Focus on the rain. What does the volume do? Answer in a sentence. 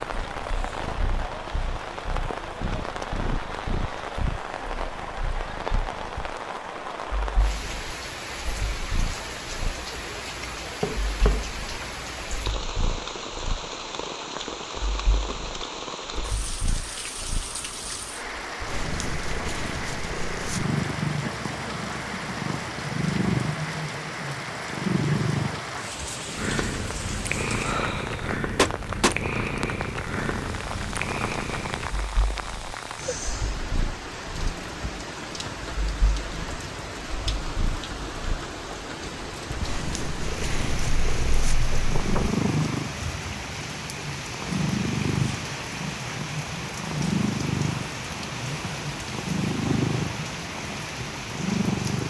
The volume of the rain stays about the same.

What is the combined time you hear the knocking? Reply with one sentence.
You can hear the knocking for 3 seconds altogether.